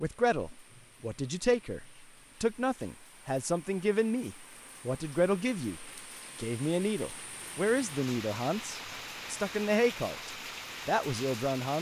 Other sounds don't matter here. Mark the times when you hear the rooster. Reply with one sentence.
The rooster can't be heard in this clip.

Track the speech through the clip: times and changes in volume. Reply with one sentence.
The speech can be heard from 0.0 to 11.7 s, at a steady volume.